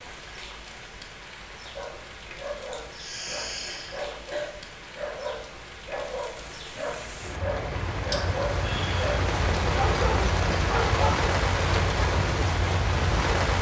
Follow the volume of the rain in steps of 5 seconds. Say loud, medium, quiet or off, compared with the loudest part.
quiet, medium, loud.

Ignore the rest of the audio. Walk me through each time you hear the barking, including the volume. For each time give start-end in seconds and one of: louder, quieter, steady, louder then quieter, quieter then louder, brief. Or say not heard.
1.8-11.2 louder.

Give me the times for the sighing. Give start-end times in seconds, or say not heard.
2.7-4.5, 8.1-9.1.